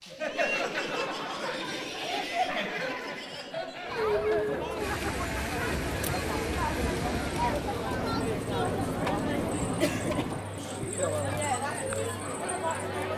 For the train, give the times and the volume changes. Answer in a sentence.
You can hear the train from 4.8 to 10.4 s, at a steady volume.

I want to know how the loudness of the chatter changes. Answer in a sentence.
The loudness of the chatter stays about the same.